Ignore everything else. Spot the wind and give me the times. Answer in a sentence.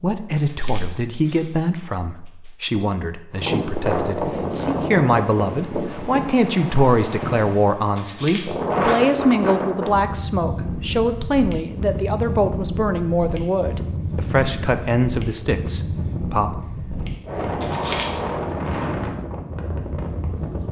You can hear the wind from 3.4 to 20.6 s.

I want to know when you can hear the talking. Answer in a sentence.
You can hear the talking from 0.0 to 16.6 s.